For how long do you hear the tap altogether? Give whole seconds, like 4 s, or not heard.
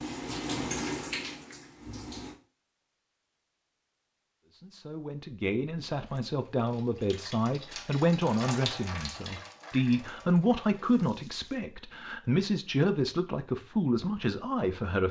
8 s.